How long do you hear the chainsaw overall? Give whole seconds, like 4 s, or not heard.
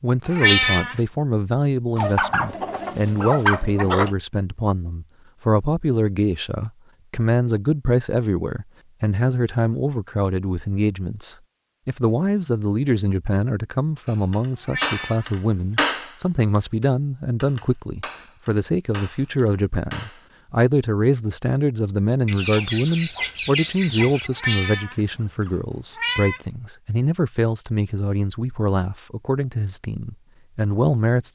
not heard.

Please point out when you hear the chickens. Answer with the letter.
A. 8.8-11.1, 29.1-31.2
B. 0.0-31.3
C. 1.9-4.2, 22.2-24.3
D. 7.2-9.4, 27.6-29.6
C.